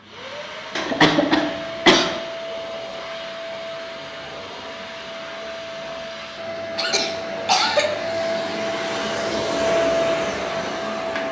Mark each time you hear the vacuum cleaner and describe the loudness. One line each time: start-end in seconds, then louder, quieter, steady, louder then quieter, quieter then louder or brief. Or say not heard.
0.0-11.2 louder.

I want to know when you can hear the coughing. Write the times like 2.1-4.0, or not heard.
0.8-2.2, 6.8-7.9.